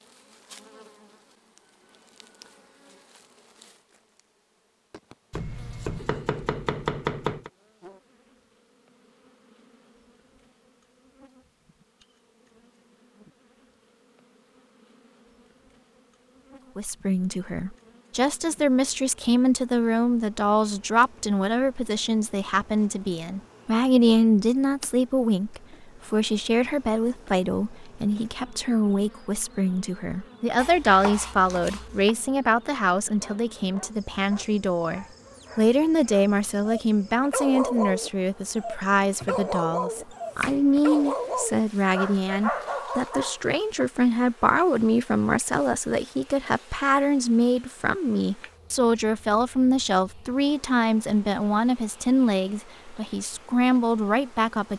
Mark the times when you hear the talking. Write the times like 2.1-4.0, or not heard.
16.8-54.7.